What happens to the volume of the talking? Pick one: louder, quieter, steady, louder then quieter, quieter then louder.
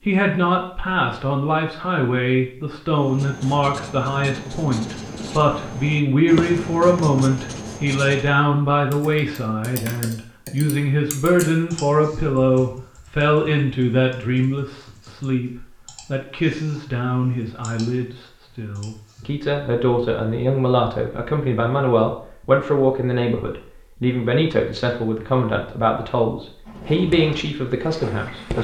steady.